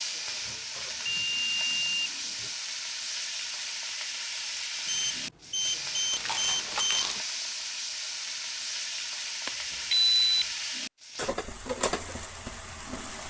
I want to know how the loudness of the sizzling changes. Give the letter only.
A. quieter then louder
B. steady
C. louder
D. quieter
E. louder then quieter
B.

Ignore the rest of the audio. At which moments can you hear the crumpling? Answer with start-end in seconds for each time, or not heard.
6.1-7.2.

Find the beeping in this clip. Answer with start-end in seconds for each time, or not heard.
0.2-2.5, 4.8-7.2, 9.4-10.4.